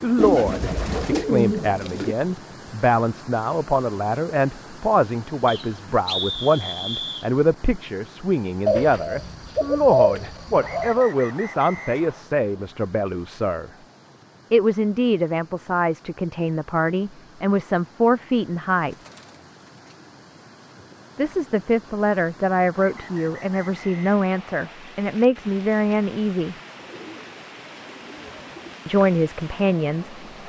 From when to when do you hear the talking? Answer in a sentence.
The talking can be heard from 0.0 to 13.7 s, from 14.5 to 18.9 s, from 21.1 to 26.6 s and from 28.9 to 30.2 s.